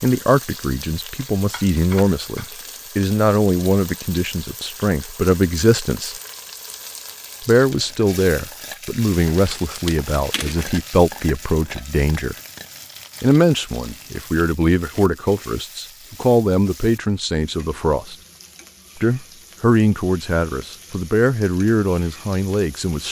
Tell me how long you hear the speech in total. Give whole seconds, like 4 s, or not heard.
20 s.